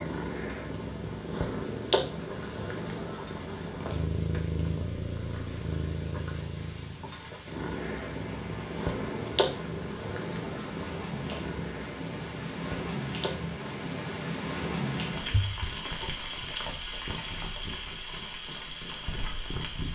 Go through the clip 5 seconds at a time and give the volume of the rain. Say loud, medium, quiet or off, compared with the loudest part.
quiet, medium, loud, loud.